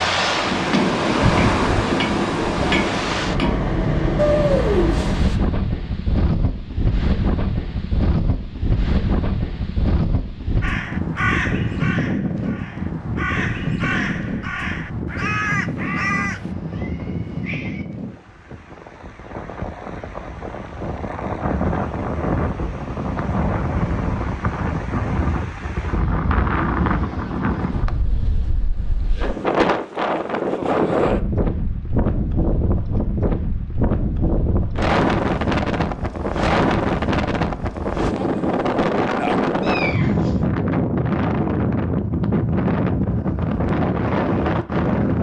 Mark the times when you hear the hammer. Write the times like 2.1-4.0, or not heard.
0.0-3.6.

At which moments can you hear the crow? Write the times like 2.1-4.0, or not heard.
10.6-16.5.